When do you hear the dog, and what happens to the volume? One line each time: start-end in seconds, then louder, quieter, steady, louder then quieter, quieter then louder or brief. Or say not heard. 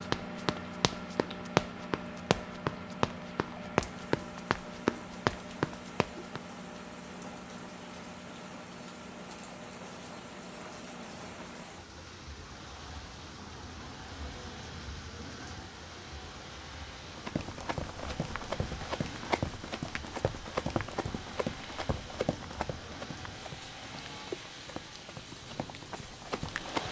not heard.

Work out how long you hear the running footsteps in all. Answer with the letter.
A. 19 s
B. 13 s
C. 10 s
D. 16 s
D.